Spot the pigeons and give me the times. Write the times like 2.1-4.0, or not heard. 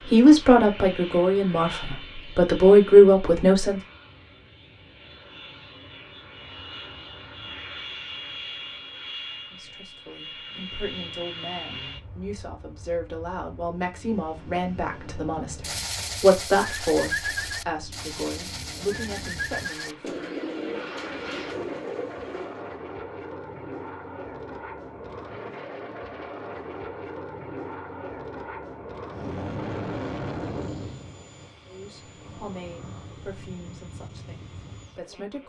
15.6-22.7.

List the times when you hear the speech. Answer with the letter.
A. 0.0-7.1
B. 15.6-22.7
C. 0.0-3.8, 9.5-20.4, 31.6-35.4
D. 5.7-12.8
C.